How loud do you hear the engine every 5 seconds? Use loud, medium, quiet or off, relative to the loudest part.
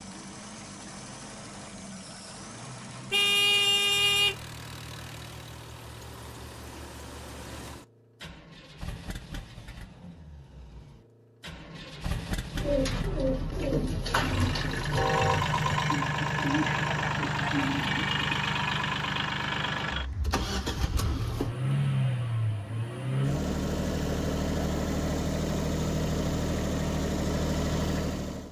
quiet, quiet, medium, loud, loud, loud.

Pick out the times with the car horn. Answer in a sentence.
You can hear the car horn from 3.1 to 4.3 s and from 14.9 to 15.5 s.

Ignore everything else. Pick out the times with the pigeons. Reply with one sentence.
The pigeons can be heard from 12.6 to 18.4 s.